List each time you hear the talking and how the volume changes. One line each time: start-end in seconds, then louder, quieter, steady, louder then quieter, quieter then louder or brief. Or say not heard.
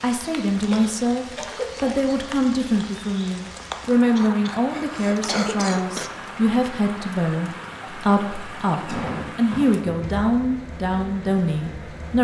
0.0-12.1 steady.